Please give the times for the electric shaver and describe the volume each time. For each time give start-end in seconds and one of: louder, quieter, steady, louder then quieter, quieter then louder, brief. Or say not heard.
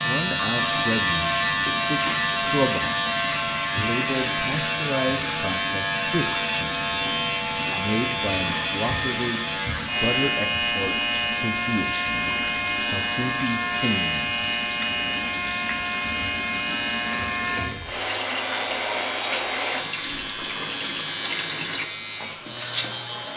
0.0-23.3 quieter.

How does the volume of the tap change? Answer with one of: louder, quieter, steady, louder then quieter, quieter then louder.
louder.